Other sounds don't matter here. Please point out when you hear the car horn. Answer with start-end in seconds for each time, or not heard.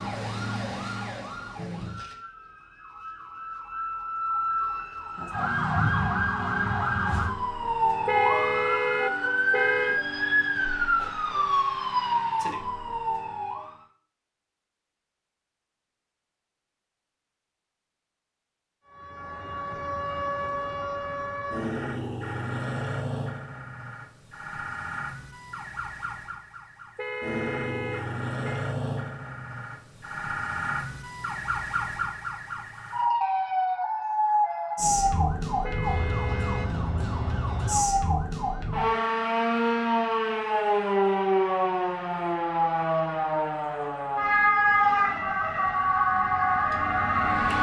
8.1-10.0, 26.9-28.6, 35.6-36.8.